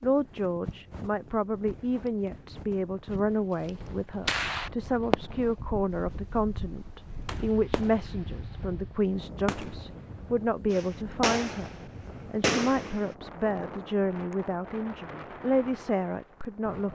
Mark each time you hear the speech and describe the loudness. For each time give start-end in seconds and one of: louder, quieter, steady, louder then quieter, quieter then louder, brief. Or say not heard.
0.0-16.8 steady.